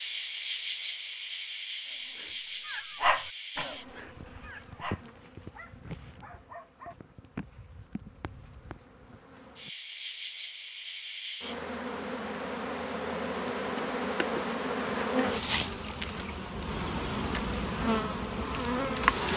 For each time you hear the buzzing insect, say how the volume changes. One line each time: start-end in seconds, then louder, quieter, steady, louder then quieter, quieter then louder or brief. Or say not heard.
0.0-19.3 quieter then louder.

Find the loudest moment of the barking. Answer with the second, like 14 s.
3 s.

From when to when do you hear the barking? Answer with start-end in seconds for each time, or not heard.
1.9-7.0.